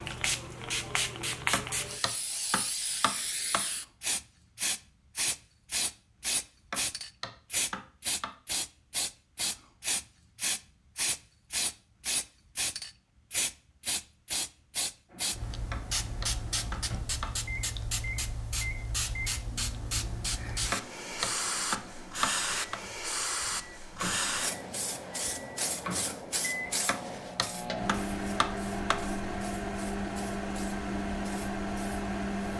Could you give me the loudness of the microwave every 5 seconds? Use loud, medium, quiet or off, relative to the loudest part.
off, off, off, quiet, quiet, loud, loud.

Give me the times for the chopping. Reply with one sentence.
The chopping can be heard from 1.5 to 3.6 s, from 6.7 to 8.3 s, from 15.7 to 17.4 s, from 20.7 to 22.8 s and from 26.9 to 29.0 s.